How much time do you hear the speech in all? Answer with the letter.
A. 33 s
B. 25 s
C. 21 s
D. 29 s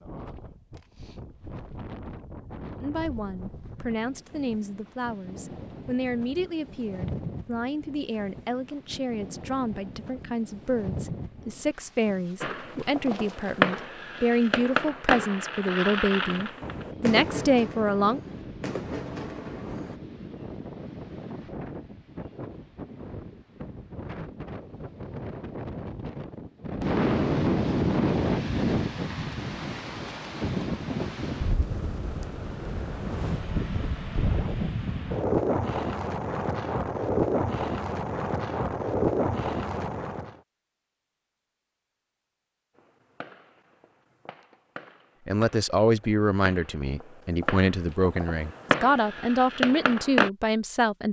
C.